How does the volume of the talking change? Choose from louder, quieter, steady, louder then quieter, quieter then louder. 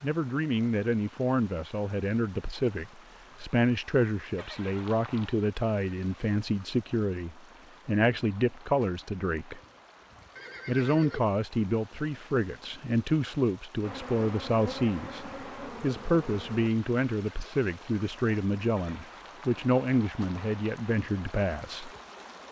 steady.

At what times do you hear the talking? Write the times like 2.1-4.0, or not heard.
0.0-9.6, 10.7-21.9.